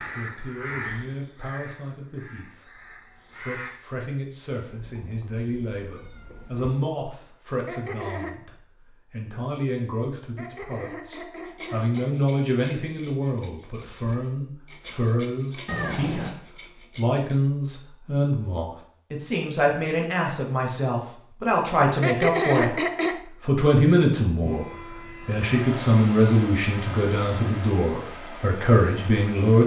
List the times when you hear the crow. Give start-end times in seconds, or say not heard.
0.0-3.9.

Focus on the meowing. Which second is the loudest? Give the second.
16 s.